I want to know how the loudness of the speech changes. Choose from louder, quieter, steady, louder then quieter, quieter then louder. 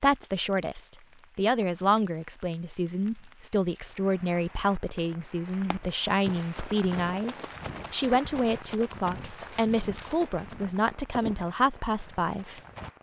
steady.